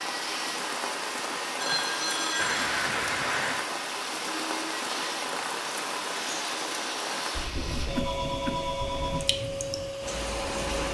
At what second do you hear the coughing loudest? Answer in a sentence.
The volume of the coughing peaks at 3 seconds.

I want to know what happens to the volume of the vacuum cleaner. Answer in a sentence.
The volume of the vacuum cleaner stays about the same.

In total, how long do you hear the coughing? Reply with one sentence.
You can hear the coughing for 2 seconds altogether.